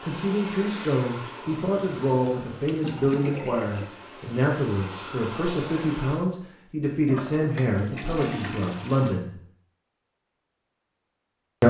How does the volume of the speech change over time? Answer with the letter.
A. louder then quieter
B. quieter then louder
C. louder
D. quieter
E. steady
E.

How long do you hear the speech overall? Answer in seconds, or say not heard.
9 s.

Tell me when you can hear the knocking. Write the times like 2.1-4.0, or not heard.
not heard.